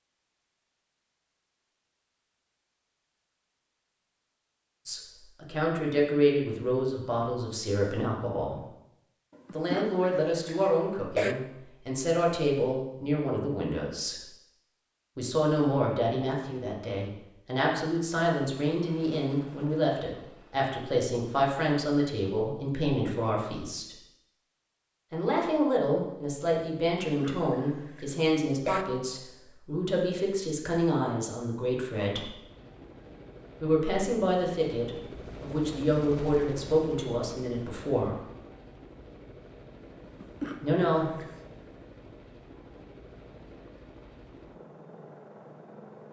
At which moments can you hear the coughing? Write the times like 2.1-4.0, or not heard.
9.4-11.3, 27.1-28.9, 40.0-41.5.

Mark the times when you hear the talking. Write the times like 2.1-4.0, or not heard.
4.8-8.6, 9.5-14.2, 15.2-23.9, 25.1-32.3, 33.6-38.1, 40.6-41.1.